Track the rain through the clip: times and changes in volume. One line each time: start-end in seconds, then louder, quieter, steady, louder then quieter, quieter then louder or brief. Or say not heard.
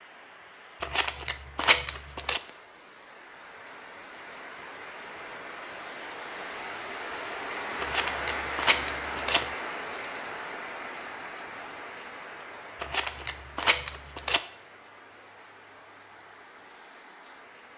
0.0-17.7 louder then quieter.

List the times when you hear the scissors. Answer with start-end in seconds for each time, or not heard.
0.8-2.4, 7.8-9.5, 12.8-14.4.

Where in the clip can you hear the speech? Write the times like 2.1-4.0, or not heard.
not heard.